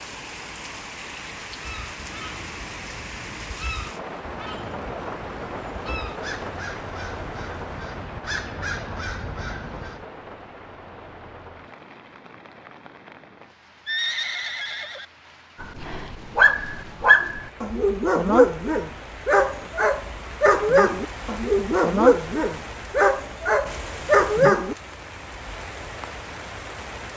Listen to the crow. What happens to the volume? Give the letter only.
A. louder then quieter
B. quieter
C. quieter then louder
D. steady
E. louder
E.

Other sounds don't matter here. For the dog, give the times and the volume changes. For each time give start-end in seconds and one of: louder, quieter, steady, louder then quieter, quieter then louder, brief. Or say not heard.
15.6-24.8 steady.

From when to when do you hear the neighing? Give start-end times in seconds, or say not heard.
13.8-15.1.